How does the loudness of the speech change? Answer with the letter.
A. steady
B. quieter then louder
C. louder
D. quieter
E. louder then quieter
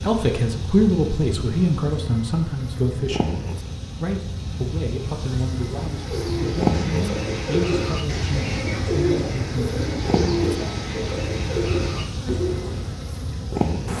D.